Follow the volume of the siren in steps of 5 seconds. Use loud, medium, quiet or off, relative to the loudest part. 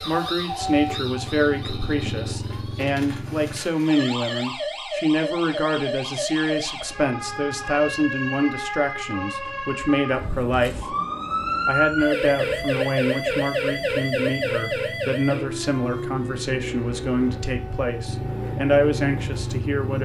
medium, medium, loud, medium.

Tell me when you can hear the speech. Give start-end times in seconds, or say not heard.
0.0-10.9, 11.7-20.0.